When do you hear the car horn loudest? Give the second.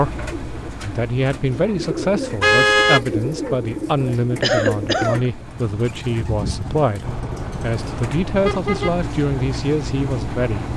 3 s.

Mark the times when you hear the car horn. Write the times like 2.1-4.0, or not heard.
2.1-3.0, 7.0-9.0.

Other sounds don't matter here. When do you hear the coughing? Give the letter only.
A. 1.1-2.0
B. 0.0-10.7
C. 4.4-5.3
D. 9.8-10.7
C.